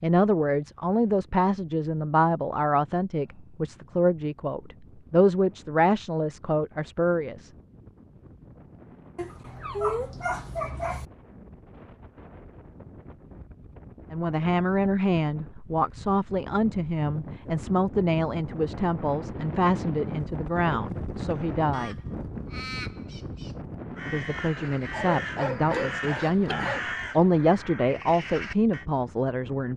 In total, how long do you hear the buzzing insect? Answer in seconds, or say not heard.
not heard.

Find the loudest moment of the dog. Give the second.
10 s.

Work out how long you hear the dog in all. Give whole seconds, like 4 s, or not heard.
4 s.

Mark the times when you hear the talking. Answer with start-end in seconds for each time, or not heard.
0.0-7.5, 14.1-22.0, 24.1-29.7.